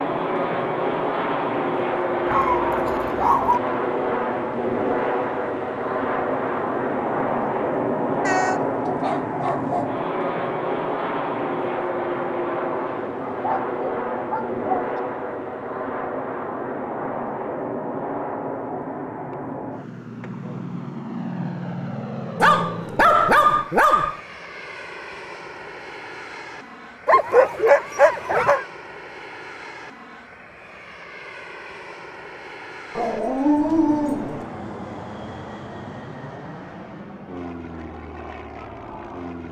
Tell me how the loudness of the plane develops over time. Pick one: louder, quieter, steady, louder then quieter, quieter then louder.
quieter.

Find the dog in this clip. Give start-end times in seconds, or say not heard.
2.2-3.6, 8.2-9.9, 13.2-14.9, 22.4-24.2, 27.1-28.6, 33.0-34.5.